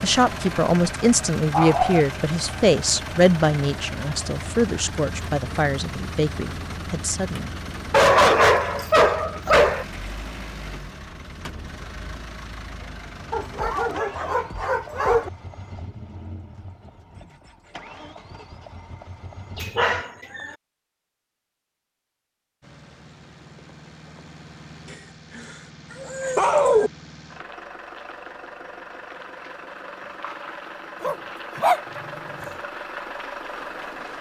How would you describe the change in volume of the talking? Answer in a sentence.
The loudness of the talking goes down.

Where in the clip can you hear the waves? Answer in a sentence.
The waves can't be heard in this clip.